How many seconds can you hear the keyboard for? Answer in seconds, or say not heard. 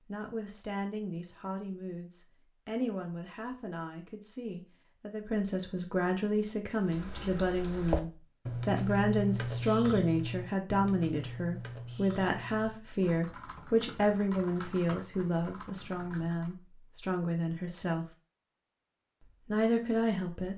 10 s.